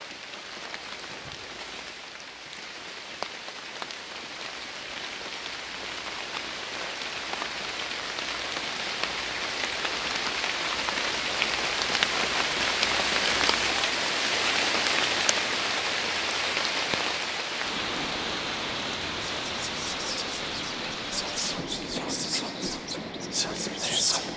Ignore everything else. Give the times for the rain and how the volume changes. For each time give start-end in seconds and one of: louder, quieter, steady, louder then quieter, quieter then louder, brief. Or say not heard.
0.0-24.3 louder then quieter.